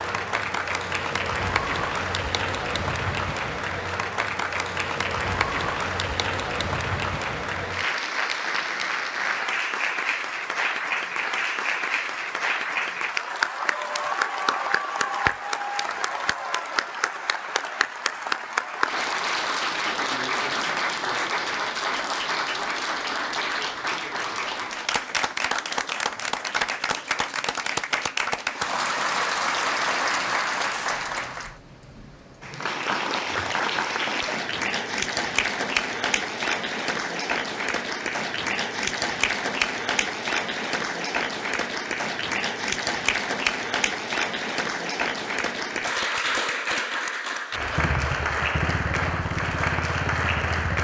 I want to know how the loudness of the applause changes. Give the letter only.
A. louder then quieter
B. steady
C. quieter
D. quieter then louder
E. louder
B.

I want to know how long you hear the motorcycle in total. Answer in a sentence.
The motorcycle can be heard for 3 seconds in total.